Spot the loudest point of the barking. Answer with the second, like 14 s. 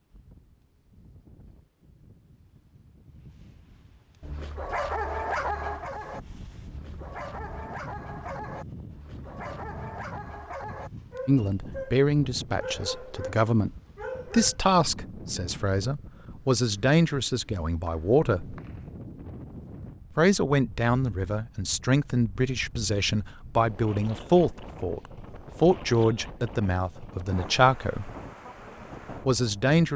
5 s.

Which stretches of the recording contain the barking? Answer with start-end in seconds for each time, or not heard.
4.2-14.7.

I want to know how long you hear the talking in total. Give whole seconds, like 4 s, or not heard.
15 s.